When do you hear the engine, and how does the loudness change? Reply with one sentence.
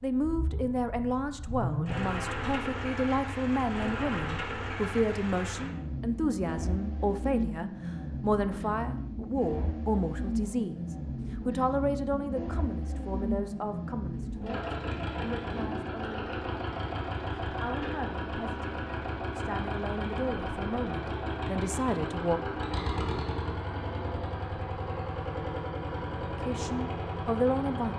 You can hear the engine from 0.0 to 27.9 s, at a steady volume.